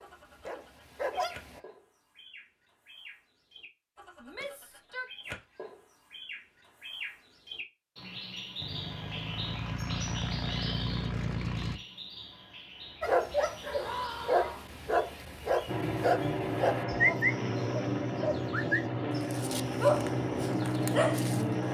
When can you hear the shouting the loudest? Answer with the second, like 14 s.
14 s.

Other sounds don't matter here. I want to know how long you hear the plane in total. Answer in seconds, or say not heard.
9 s.